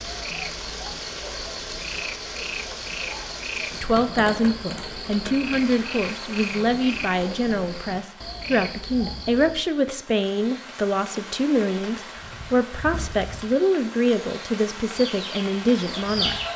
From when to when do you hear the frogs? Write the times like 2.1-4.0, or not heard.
0.0-9.7.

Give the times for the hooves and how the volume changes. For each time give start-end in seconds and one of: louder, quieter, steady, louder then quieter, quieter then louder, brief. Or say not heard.
not heard.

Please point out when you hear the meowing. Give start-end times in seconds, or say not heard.
not heard.